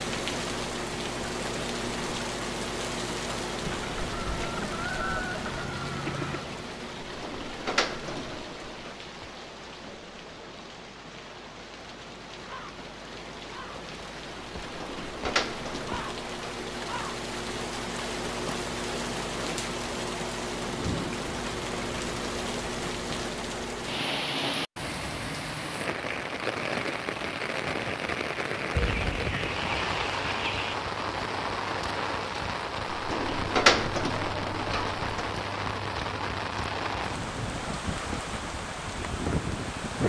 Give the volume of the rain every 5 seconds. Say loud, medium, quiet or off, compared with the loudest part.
loud, medium, medium, loud, loud, loud, loud, loud.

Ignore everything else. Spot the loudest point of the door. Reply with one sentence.
The loudest moment of the door is at 34 seconds.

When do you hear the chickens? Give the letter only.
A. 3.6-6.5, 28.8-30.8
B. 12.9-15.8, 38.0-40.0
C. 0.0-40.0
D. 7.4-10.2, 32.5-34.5
A.